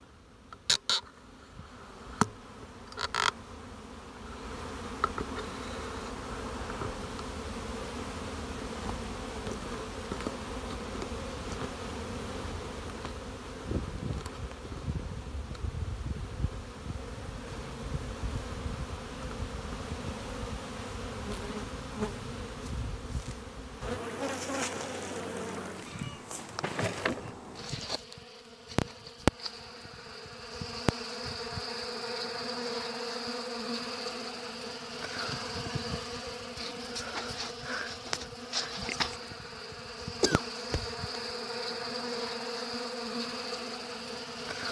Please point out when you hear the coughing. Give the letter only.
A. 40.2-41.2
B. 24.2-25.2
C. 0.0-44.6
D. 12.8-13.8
A.